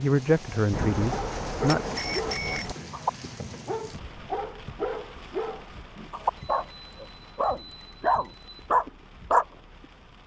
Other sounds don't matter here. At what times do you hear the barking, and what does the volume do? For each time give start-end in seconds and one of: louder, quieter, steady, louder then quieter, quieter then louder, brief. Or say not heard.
1.0-9.4 louder.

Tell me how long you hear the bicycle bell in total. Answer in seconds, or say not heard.
4 s.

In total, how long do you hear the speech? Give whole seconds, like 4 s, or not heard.
2 s.